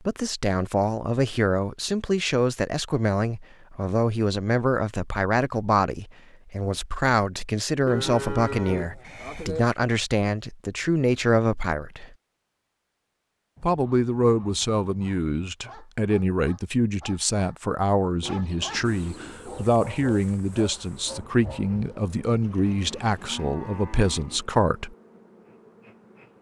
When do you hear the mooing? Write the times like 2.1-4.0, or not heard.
7.8-9.7, 22.4-24.4.